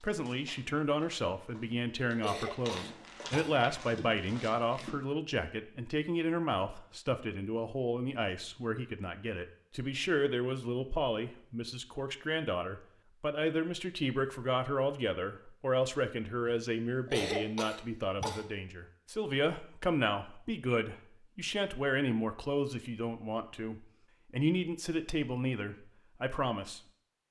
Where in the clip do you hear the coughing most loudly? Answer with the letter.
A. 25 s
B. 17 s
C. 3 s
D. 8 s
B.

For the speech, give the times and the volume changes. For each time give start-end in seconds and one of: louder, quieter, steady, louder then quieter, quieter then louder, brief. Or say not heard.
0.0-26.8 steady.